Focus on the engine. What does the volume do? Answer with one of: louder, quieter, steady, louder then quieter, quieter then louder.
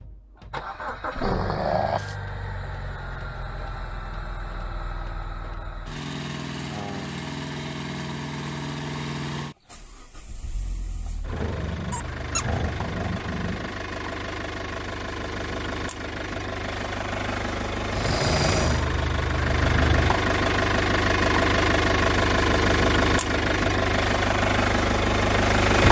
louder.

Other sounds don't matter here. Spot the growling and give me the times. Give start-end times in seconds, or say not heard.
1.2-2.1, 11.2-13.8, 17.9-18.9.